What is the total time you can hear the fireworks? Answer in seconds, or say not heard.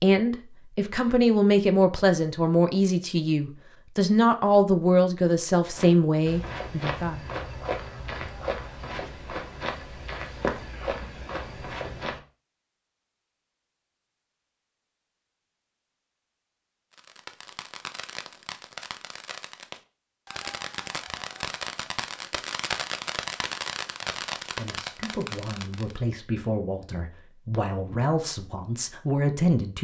9 s.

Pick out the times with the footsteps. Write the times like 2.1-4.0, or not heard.
5.7-12.2.